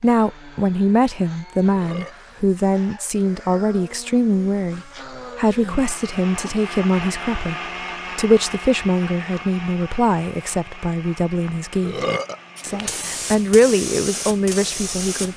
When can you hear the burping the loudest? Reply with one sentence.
The loudest moment of the burping is at 12 seconds.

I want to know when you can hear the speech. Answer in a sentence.
You can hear the speech from 0.0 to 15.3 s.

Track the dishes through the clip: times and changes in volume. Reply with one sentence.
You can't hear the dishes here.